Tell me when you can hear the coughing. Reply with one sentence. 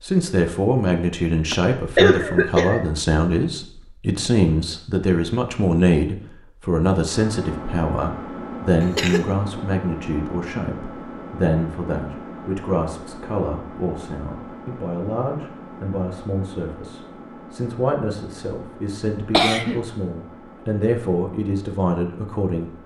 The coughing can be heard from 1.5 to 2.9 s, from 8.8 to 9.2 s and from 19.3 to 19.8 s.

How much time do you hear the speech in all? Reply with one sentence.
The speech can be heard for 23 seconds in total.